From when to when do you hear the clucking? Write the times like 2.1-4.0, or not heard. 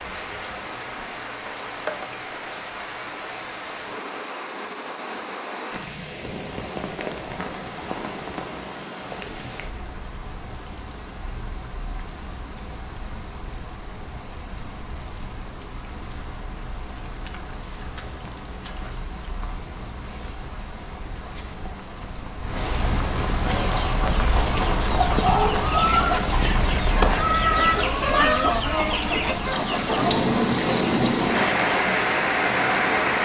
23.4-31.7.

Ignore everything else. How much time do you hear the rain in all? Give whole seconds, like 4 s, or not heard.
33 s.